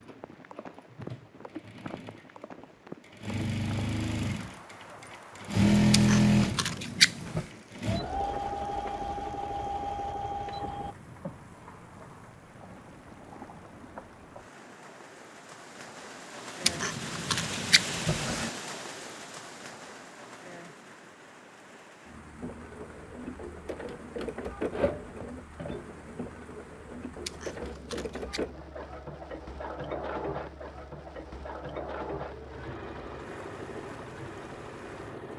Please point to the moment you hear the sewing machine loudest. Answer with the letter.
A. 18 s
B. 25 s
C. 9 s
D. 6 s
D.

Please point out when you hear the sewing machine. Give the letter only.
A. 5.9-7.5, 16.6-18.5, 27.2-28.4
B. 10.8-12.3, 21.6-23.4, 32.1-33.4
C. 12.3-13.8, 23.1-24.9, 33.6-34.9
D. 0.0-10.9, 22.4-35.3
D.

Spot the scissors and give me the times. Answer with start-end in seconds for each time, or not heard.
5.9-7.5, 16.6-18.5, 27.2-28.4.